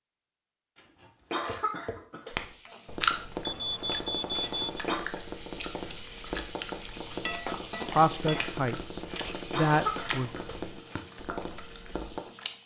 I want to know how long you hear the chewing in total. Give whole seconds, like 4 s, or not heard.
10 s.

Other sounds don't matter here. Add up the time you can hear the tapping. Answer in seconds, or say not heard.
11 s.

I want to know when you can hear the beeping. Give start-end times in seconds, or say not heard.
3.5-4.8.